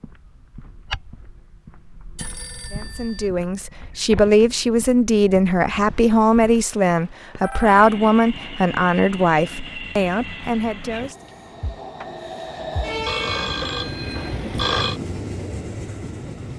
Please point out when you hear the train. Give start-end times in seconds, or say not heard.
7.6-16.5.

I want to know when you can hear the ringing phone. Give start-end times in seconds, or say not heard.
2.1-3.3, 5.7-7.8, 13.1-15.0.